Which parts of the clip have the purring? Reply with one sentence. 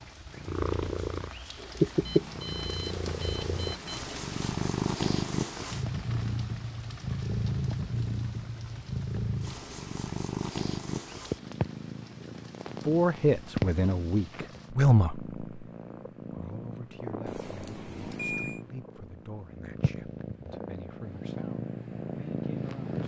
You can hear the purring from 0.0 to 23.0 s.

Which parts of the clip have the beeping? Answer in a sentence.
You can hear the beeping from 2.0 to 4.0 s and from 17.2 to 18.6 s.